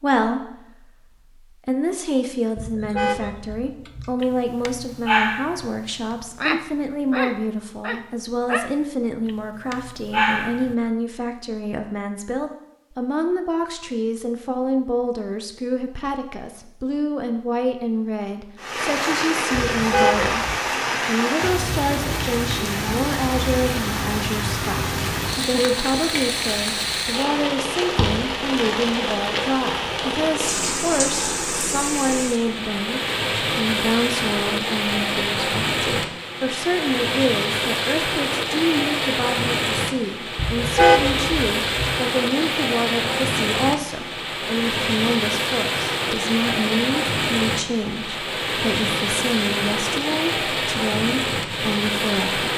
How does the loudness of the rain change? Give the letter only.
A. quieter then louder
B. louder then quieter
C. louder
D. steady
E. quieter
D.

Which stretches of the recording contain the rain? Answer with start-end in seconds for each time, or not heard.
18.6-52.5.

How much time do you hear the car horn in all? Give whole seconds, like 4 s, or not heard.
4 s.